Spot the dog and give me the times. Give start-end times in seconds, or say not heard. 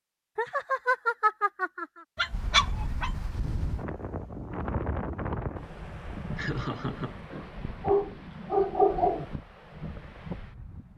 2.1-3.2, 7.3-9.2.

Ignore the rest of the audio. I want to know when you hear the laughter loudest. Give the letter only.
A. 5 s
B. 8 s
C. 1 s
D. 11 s
C.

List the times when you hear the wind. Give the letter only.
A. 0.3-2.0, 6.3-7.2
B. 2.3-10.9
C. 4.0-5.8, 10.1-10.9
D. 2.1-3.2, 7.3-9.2
B.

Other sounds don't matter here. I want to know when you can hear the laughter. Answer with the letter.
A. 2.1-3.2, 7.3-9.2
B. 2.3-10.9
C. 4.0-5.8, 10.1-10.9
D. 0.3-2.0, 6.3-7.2
D.